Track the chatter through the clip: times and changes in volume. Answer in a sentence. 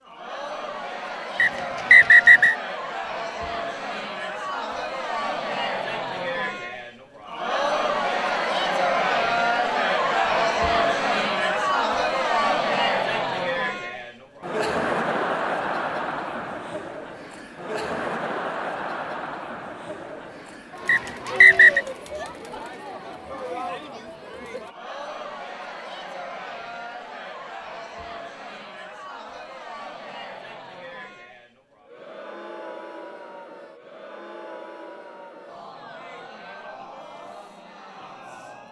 You can hear the chatter from 0.0 to 38.6 s, getting louder then quieter.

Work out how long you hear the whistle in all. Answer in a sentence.
You can hear the whistle for 2 seconds altogether.